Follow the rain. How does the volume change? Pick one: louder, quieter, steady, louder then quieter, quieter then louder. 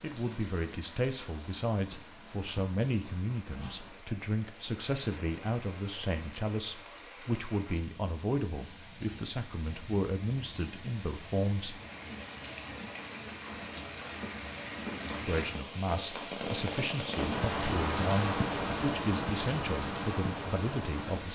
louder.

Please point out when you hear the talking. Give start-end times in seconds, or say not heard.
0.0-11.8, 15.2-21.2.